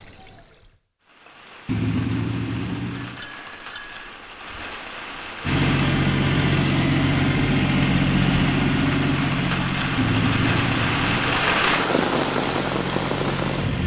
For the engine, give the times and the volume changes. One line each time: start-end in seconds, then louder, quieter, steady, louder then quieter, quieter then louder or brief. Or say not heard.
5.4-13.8 quieter.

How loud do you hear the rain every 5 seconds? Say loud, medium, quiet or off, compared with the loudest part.
quiet, medium, loud.